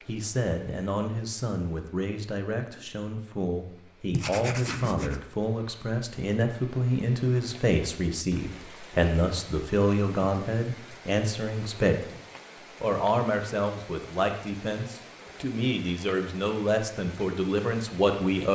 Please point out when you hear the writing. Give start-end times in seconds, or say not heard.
4.1-5.2.